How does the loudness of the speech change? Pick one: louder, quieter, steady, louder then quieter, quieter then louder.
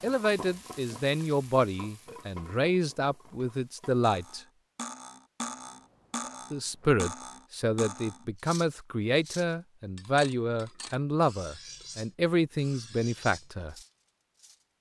steady.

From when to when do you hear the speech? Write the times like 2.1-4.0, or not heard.
0.0-4.4, 6.5-13.8.